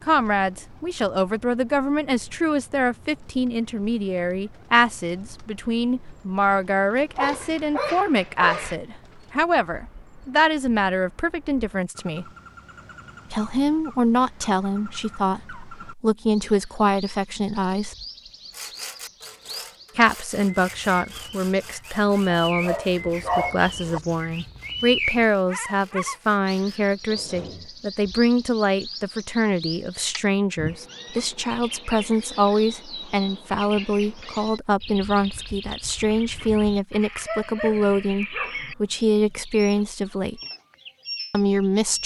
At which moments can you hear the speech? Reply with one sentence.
The speech can be heard from 0.1 to 12.2 s, from 13.3 to 17.9 s, from 19.9 to 40.4 s and from 41.3 to 42.0 s.